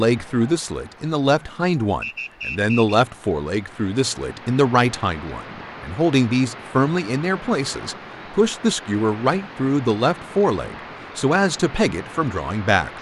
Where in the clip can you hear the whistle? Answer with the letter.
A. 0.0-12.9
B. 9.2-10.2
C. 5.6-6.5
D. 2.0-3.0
D.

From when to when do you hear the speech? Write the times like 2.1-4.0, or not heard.
0.0-12.9.